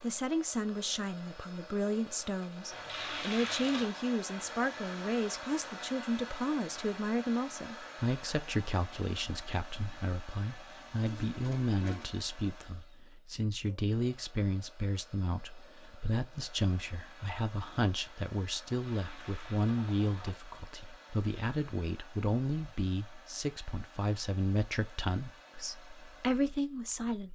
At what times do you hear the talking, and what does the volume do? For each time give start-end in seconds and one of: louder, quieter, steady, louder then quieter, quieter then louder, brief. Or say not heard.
0.0-27.3 steady.